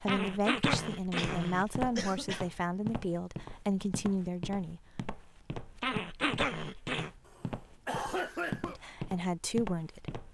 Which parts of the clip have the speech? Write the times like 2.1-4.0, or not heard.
0.0-4.8, 8.7-10.2.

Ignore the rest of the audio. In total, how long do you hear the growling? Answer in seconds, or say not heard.
3 s.